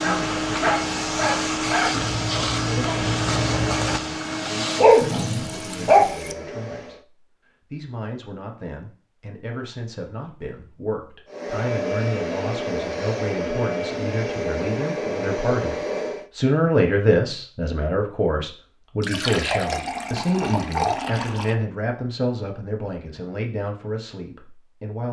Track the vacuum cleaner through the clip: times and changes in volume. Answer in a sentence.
You can hear the vacuum cleaner from 0.0 to 7.0 s, getting quieter; and from 11.2 to 16.3 s, at a steady volume.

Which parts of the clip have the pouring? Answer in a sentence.
The pouring can be heard from 5.0 to 6.3 s and from 19.0 to 21.6 s.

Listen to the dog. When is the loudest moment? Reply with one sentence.
The loudest moment of the dog is at 5 seconds.